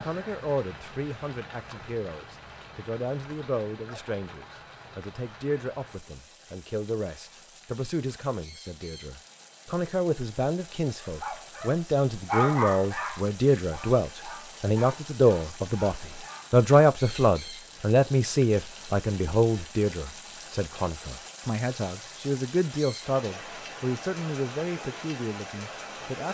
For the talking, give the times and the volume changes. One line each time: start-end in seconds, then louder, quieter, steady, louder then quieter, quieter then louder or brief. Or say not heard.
0.0-26.2 louder then quieter.